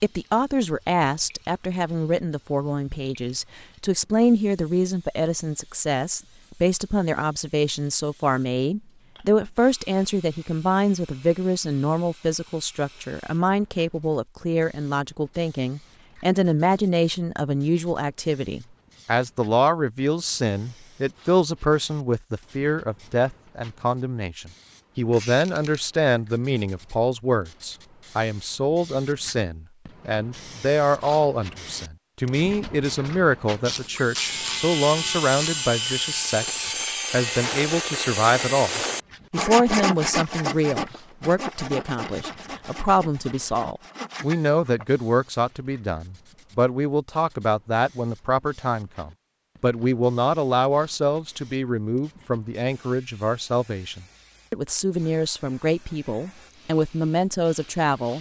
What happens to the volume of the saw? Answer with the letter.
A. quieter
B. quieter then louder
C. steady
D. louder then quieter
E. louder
A.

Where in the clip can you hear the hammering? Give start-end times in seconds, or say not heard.
not heard.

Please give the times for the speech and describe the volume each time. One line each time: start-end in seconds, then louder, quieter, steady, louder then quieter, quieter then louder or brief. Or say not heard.
0.0-58.1 steady.